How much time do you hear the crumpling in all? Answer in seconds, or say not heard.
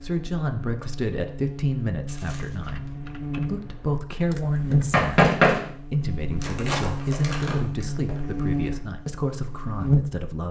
3 s.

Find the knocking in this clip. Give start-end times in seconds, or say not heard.
4.9-5.7.